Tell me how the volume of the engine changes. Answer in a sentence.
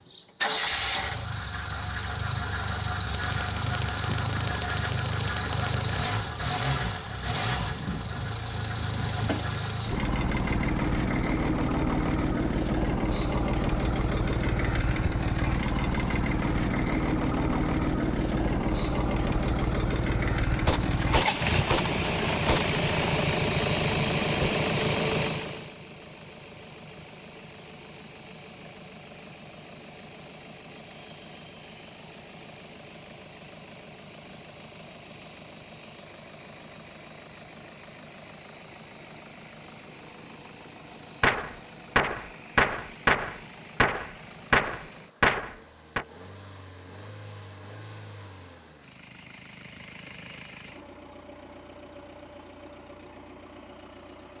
The volume of the engine goes down.